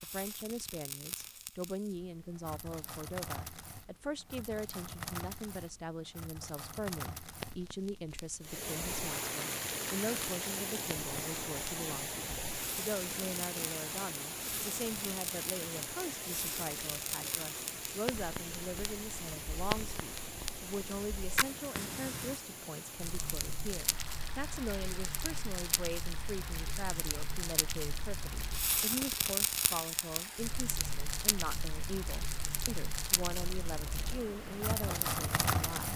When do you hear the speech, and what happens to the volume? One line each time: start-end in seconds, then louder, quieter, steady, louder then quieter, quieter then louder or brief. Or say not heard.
0.0-35.9 steady.